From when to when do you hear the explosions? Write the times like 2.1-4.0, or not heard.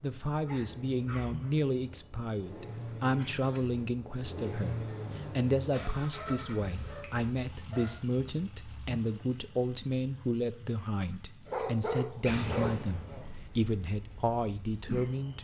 12.2-13.3.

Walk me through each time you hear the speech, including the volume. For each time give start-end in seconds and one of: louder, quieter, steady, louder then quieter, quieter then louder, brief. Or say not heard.
0.0-15.3 steady.